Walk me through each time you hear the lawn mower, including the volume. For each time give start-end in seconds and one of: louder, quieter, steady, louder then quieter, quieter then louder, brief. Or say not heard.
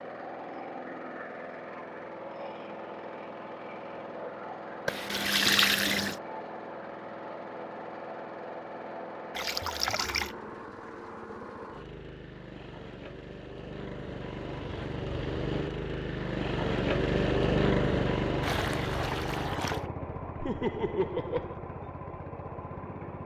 0.0-23.2 louder then quieter.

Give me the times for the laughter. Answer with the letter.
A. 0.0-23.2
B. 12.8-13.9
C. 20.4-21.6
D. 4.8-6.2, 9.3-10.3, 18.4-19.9
C.